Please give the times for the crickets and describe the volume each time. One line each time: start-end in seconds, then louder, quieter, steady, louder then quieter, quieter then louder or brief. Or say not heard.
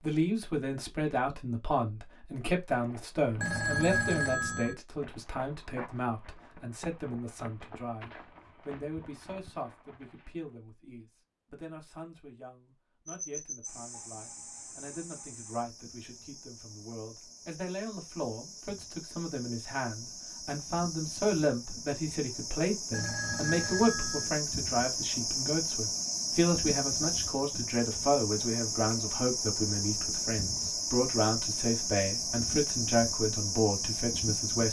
13.1-34.6 louder.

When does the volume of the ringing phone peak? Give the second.
4 s.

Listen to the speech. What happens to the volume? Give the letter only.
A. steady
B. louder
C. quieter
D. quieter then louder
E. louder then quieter
D.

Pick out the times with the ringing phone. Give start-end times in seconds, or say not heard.
3.4-4.8, 22.9-24.3.